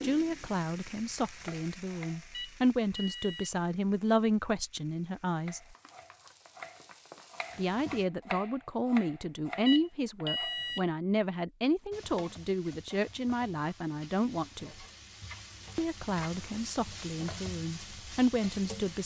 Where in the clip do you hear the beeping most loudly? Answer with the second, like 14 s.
10 s.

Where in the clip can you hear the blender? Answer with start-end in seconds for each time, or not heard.
not heard.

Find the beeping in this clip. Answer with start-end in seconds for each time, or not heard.
2.3-3.5, 9.7-10.8.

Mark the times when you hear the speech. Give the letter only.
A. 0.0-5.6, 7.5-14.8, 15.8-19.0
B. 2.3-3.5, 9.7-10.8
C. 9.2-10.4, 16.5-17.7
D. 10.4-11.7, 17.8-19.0
A.